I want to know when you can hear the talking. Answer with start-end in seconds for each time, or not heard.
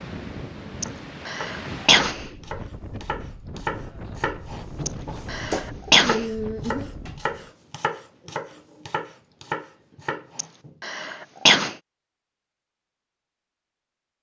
not heard.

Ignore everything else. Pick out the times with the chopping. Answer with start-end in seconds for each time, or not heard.
0.7-10.8.